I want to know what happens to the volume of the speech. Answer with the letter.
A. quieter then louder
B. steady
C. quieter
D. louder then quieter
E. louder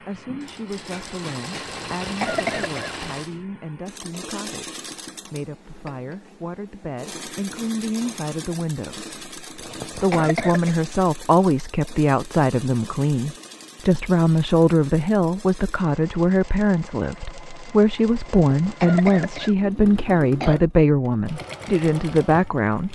E.